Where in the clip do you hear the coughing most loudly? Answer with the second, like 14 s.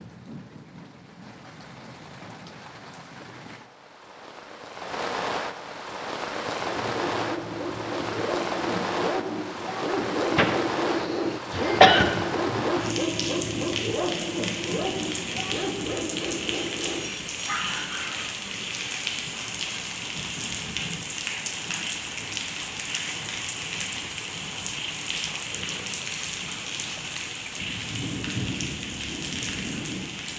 12 s.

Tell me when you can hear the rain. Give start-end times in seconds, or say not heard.
0.0-30.3.